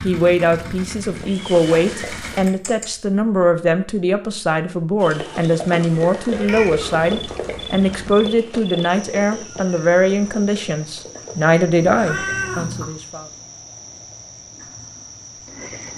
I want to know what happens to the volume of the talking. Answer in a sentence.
The volume of the talking stays about the same.